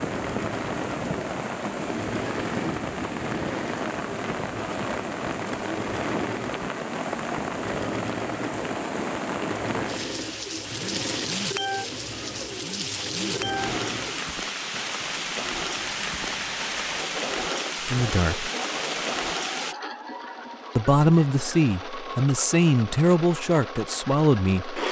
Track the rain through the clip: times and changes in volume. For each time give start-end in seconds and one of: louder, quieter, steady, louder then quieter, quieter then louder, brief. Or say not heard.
0.0-19.8 steady.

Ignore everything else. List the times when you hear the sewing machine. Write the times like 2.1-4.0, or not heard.
0.0-24.8.